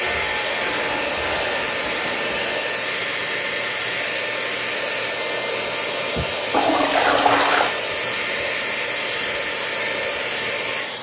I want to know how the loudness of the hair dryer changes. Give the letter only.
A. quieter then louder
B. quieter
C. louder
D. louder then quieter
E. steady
E.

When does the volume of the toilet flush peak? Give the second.
7 s.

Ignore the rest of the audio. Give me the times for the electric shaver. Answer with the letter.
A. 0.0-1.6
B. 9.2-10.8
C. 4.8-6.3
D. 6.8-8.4
A.